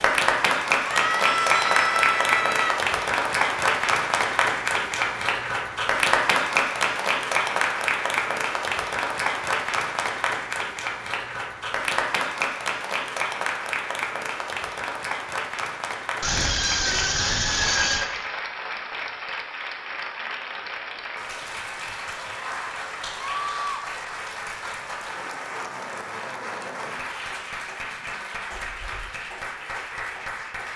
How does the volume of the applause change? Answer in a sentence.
The volume of the applause goes down.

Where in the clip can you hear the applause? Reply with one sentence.
You can hear the applause from 0.0 to 30.7 s.